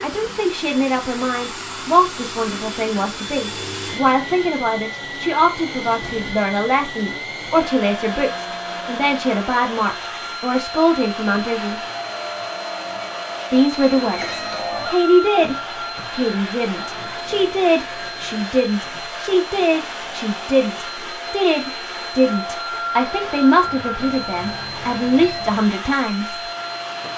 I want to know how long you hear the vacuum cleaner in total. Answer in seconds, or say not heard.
27 s.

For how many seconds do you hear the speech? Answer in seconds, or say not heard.
25 s.